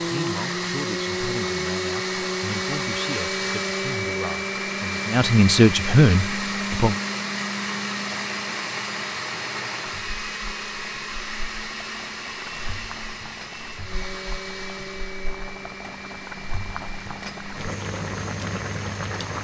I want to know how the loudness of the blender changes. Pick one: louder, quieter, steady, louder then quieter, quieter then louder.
quieter.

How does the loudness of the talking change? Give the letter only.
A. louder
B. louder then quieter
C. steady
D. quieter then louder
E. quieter
A.